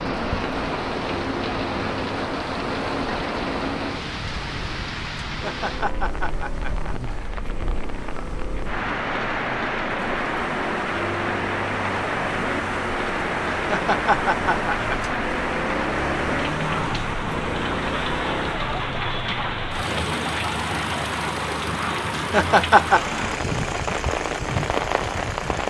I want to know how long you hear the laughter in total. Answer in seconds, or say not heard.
4 s.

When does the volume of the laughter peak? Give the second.
23 s.